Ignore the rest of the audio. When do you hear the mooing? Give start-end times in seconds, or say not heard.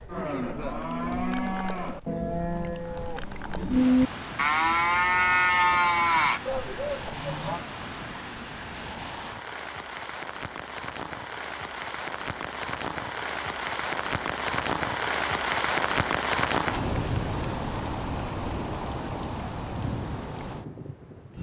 0.1-7.6.